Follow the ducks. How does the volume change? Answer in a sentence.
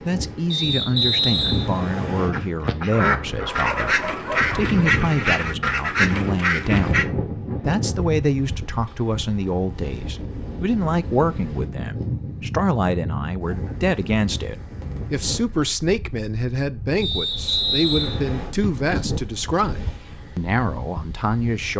The loudness of the ducks stays about the same.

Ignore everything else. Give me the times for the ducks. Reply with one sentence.
You can hear the ducks from 2.3 to 7.0 s.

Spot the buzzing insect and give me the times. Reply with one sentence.
You can't hear the buzzing insect here.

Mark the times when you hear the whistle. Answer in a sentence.
The whistle can be heard from 0.5 to 2.3 s and from 17.0 to 18.5 s.